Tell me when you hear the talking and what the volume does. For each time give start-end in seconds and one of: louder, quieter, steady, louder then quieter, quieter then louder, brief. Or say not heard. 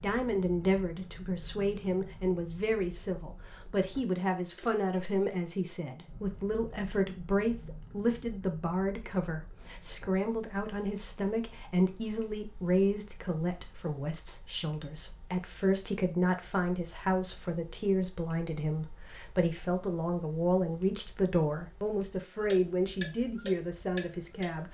0.0-24.6 steady.